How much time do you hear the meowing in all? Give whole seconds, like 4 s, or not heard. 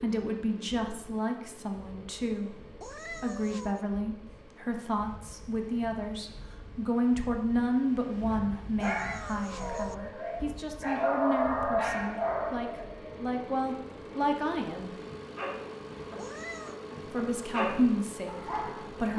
3 s.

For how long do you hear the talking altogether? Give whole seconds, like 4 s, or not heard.
17 s.